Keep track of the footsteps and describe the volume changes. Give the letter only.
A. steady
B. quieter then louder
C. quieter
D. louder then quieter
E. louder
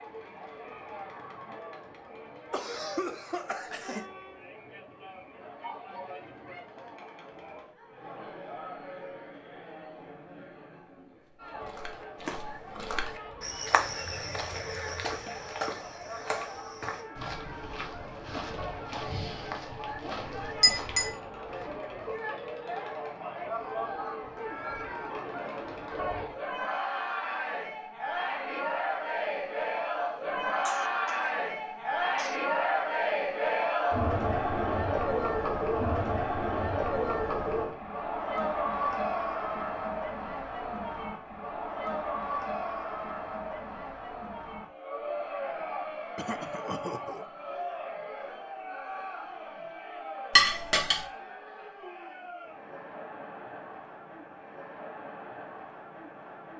C.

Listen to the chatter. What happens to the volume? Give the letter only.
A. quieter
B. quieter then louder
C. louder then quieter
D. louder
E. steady
C.